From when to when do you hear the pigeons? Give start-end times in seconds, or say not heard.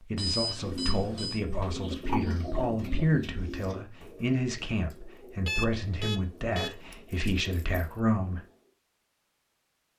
0.6-8.7.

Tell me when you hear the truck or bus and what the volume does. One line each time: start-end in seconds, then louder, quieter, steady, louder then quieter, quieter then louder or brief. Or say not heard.
not heard.